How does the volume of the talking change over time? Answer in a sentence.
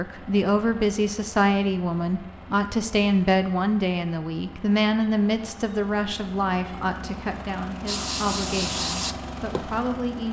The volume of the talking goes down.